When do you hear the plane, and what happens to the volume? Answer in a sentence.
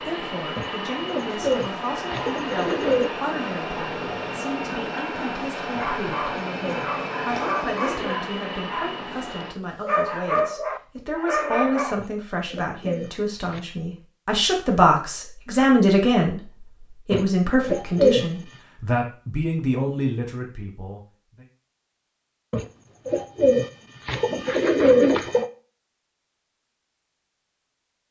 The plane can be heard from 0.0 to 9.6 s, at a steady volume.